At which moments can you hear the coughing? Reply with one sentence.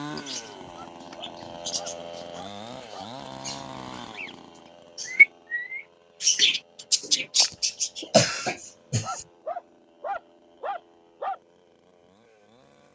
You can hear the coughing from 7.4 to 9.2 s.